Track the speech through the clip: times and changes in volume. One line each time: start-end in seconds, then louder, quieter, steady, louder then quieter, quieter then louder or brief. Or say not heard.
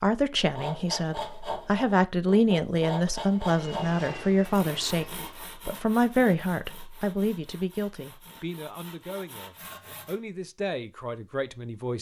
0.0-11.9 quieter.